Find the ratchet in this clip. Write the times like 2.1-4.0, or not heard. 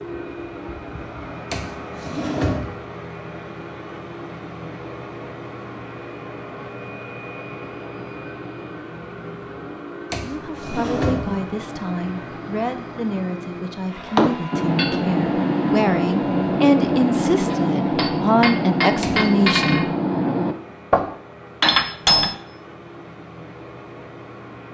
not heard.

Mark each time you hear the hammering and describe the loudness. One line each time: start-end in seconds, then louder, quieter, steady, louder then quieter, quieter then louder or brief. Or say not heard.
14.2-22.4 steady.